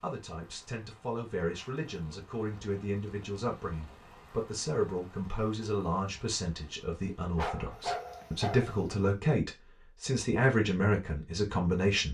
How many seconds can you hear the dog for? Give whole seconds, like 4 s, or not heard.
2 s.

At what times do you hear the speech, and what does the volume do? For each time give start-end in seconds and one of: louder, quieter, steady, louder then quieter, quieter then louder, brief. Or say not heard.
0.0-12.0 louder.